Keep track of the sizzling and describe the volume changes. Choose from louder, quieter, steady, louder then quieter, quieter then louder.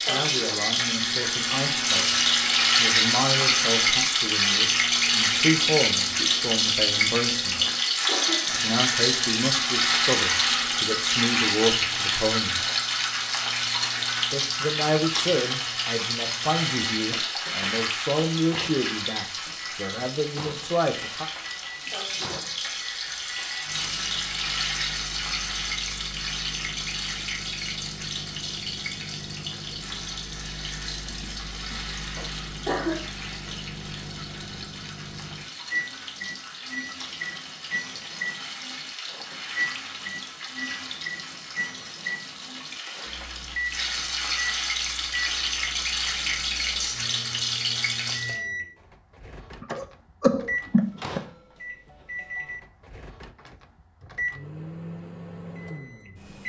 quieter then louder.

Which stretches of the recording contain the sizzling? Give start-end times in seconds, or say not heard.
0.0-48.4.